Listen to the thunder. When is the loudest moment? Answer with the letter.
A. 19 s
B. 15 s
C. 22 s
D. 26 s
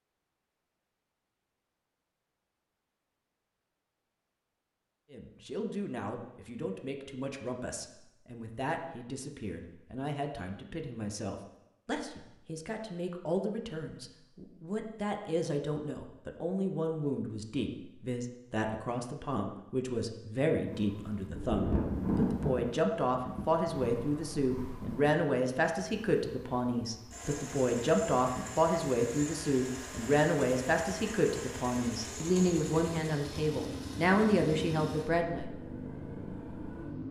C.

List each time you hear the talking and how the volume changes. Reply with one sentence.
You can hear the talking from 5.1 to 35.5 s, getting louder.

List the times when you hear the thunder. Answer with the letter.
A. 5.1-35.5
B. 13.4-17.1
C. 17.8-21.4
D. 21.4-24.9
D.